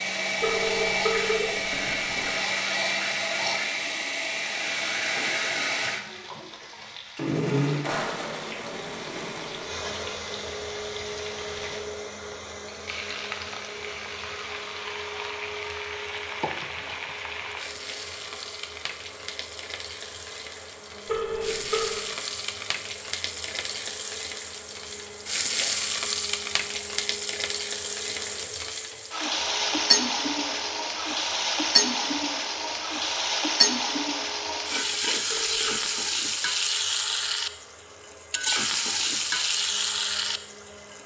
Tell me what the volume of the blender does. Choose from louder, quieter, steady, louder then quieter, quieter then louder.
quieter.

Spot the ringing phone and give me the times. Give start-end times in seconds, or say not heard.
0.4-2.3, 21.1-22.1, 35.2-35.8.